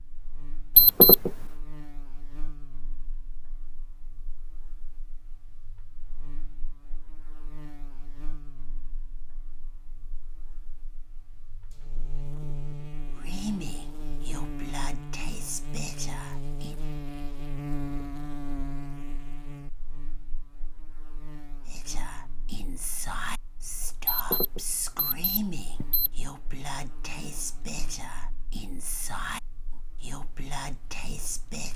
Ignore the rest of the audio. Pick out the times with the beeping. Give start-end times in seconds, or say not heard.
0.8-1.3, 24.1-26.1.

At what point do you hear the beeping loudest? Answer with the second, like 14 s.
1 s.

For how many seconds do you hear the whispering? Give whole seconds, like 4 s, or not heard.
13 s.